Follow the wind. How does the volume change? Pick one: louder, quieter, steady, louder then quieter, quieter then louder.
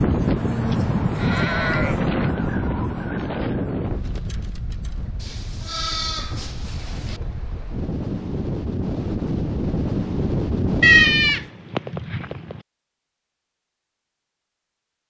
quieter then louder.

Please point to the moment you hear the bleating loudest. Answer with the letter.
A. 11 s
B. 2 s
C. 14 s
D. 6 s
A.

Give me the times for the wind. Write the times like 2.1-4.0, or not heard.
0.0-11.4.